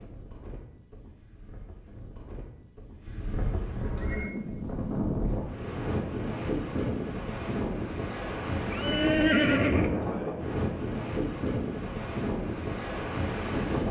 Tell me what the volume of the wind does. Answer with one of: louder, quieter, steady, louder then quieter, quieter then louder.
louder.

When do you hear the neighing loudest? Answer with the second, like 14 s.
9 s.